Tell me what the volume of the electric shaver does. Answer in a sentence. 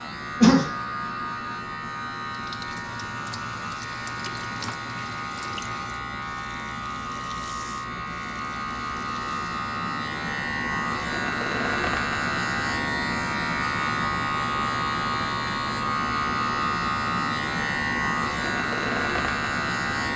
The volume of the electric shaver goes up.